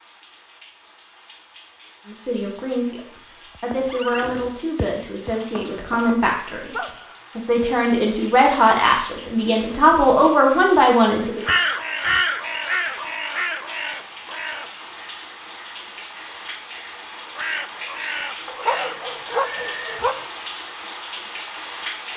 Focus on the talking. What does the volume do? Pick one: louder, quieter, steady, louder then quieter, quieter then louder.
louder.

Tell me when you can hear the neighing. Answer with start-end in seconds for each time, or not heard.
3.7-5.3, 11.4-12.2, 19.2-20.1.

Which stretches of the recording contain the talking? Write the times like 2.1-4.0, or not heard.
2.0-11.4.